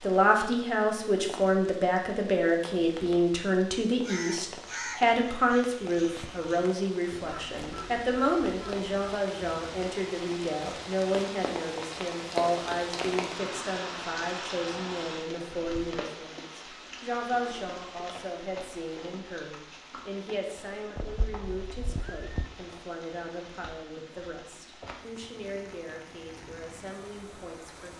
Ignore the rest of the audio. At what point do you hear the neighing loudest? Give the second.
22 s.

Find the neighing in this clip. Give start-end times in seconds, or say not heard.
20.9-22.5.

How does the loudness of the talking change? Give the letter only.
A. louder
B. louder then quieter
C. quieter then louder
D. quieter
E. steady
D.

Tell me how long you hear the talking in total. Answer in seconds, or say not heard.
28 s.